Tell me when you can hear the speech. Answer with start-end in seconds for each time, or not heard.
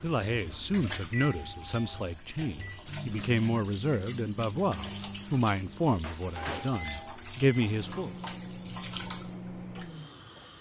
0.0-8.1.